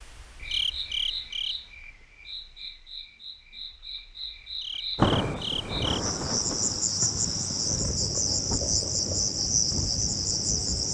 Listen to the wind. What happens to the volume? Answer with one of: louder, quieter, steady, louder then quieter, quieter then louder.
quieter.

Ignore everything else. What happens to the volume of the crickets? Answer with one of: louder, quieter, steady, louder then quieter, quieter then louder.
quieter then louder.